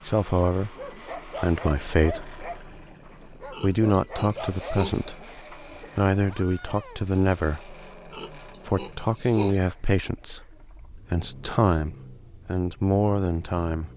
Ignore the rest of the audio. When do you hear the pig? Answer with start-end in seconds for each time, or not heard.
3.5-5.0, 8.1-9.6.